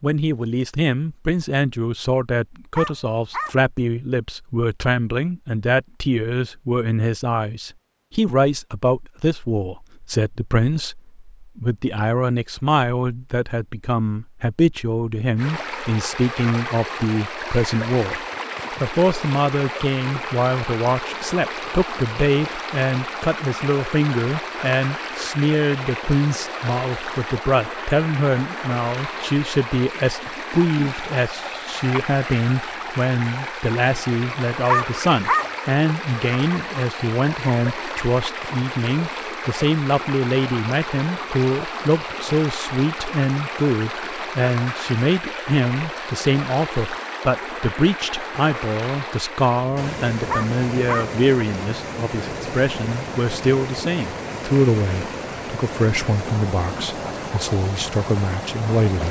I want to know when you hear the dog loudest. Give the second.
35 s.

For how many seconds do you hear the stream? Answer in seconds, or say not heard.
44 s.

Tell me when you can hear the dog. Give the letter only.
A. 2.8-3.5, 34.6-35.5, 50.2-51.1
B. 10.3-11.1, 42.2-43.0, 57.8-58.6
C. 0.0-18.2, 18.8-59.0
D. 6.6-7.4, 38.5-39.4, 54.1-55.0
A.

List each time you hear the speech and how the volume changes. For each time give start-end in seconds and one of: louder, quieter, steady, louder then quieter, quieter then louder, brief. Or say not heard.
0.0-18.2 steady
18.8-59.0 steady.